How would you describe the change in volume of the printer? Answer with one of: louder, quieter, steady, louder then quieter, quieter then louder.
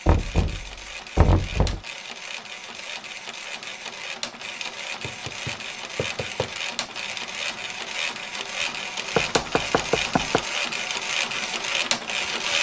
louder.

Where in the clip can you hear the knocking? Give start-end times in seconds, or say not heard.
0.1-1.8, 5.0-6.5, 9.2-10.4.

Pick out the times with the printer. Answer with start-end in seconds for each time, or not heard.
0.0-12.5.